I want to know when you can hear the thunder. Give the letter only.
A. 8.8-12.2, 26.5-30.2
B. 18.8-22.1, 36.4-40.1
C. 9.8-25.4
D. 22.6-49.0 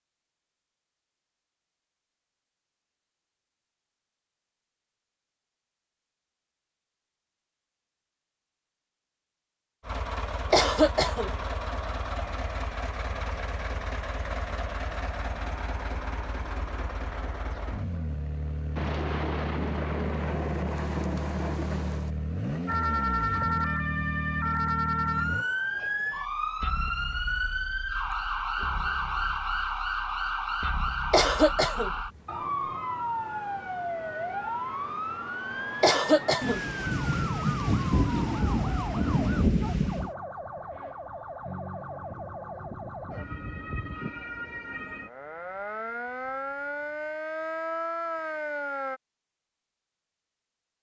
B.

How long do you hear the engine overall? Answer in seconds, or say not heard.
16 s.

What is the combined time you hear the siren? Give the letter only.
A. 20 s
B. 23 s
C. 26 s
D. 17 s
C.